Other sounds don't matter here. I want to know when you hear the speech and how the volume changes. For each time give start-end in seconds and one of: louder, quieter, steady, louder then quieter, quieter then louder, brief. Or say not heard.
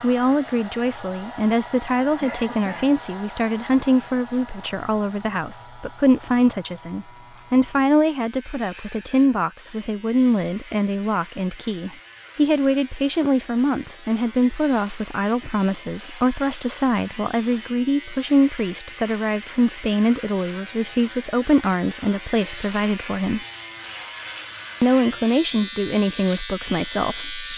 0.0-23.4 steady
24.8-27.5 brief.